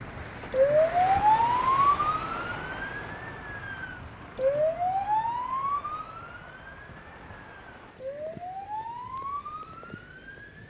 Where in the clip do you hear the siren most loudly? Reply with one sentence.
The loudest moment of the siren is at 1 second.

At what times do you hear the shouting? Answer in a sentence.
You can't hear the shouting here.